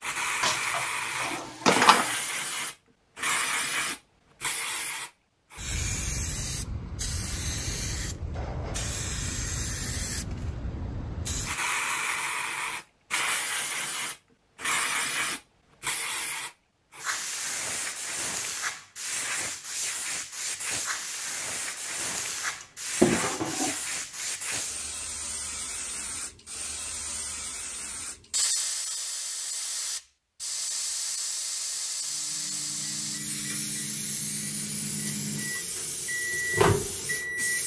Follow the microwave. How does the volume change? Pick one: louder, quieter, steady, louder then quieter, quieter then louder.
louder.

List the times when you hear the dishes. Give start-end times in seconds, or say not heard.
0.4-2.1, 22.4-24.3.